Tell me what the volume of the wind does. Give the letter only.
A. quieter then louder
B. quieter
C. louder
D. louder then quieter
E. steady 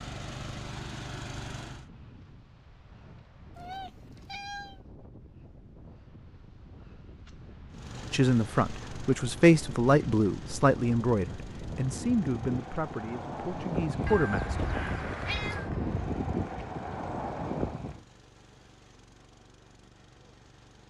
C.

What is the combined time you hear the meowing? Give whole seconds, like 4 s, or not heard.
3 s.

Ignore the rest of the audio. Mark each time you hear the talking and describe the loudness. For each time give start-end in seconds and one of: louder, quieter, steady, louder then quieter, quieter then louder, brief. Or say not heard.
8.1-14.6 quieter.